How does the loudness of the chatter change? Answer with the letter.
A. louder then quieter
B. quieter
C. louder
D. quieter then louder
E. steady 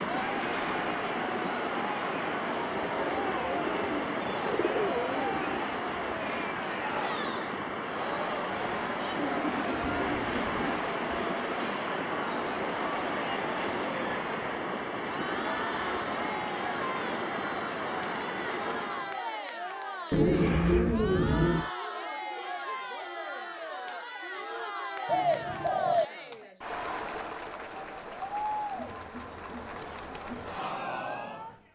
E.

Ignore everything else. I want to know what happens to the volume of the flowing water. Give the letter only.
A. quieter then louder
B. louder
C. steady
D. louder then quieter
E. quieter
C.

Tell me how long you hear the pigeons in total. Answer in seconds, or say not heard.
8 s.